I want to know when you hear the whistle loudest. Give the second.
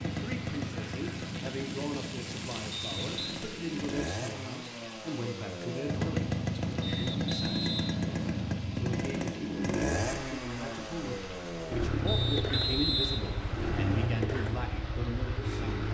13 s.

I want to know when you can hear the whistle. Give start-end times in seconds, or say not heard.
2.7-3.4, 6.8-8.6, 12.1-14.1.